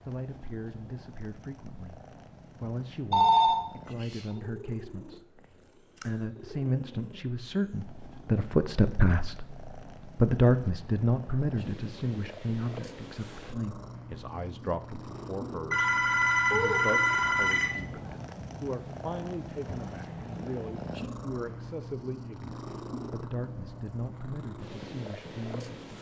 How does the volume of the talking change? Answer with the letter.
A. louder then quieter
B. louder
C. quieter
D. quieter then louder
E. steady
A.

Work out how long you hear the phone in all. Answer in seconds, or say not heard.
3 s.